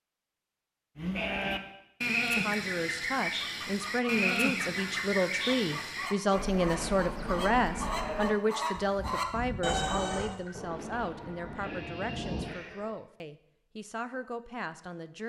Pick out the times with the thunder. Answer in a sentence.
You can hear the thunder from 10.6 to 12.6 s.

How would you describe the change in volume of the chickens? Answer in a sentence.
The volume of the chickens goes up.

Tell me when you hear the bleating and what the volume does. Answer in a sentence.
The bleating can be heard from 0.9 to 12.9 s, getting quieter.